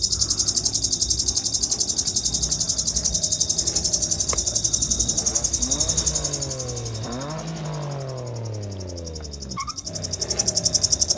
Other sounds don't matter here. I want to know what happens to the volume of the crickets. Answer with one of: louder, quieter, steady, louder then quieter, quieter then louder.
quieter then louder.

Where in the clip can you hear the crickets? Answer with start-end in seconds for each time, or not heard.
0.0-11.1.